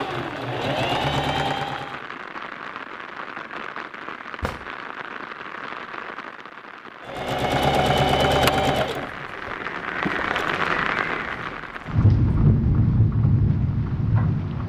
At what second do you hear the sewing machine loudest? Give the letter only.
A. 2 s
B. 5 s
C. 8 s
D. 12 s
C.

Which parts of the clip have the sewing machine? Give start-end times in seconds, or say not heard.
0.0-2.0, 7.0-12.0.